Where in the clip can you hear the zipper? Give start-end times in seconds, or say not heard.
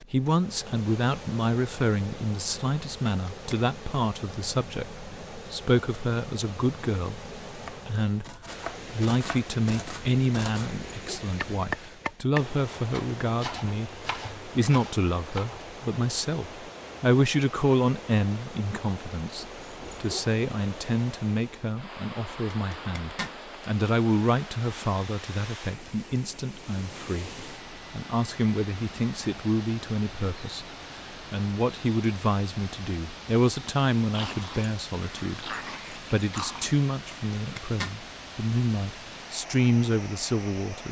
3.0-3.6, 22.5-23.4, 37.1-38.0.